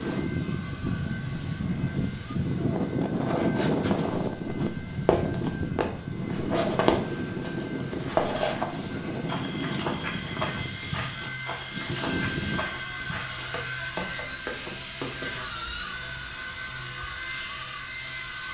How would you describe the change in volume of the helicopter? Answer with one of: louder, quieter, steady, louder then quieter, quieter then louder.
louder.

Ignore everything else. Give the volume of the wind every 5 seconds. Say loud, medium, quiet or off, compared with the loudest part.
loud, loud, medium, off.